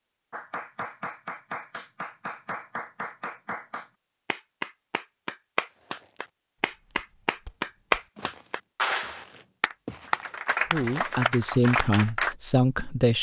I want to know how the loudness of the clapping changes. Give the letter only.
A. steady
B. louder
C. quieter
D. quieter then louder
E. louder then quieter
B.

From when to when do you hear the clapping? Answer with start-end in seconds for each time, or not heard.
0.3-12.3.